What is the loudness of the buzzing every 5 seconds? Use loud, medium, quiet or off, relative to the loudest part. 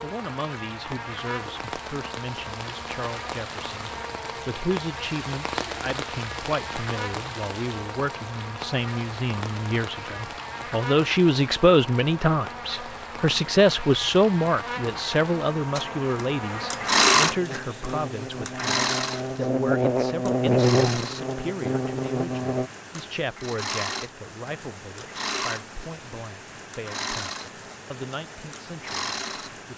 quiet, quiet, quiet, medium, loud, off.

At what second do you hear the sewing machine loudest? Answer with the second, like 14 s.
17 s.